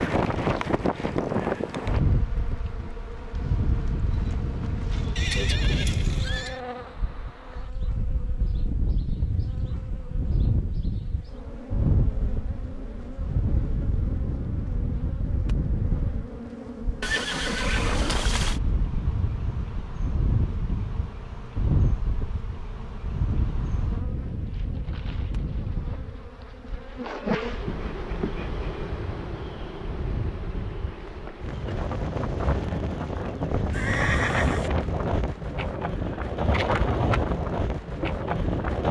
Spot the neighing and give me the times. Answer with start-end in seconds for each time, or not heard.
5.2-6.6, 17.0-18.6, 33.7-34.7.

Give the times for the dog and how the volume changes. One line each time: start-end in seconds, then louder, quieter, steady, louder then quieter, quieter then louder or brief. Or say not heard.
not heard.